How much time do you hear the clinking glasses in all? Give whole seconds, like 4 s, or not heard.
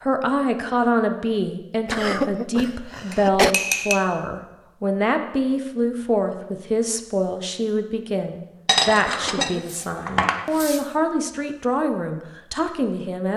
3 s.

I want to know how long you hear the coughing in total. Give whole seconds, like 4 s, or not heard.
2 s.